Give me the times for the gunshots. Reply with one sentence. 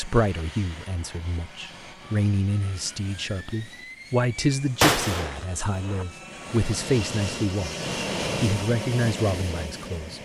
The gunshots can be heard from 4.8 to 6.0 s.